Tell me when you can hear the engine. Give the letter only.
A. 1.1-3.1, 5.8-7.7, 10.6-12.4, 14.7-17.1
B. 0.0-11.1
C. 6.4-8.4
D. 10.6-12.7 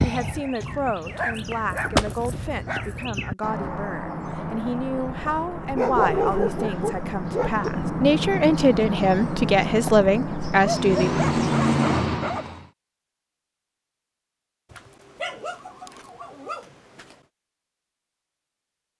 D.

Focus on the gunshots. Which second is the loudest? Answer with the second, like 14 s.
2 s.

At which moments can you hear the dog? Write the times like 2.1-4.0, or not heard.
1.1-3.1, 5.8-7.7, 10.6-12.4, 14.7-17.1.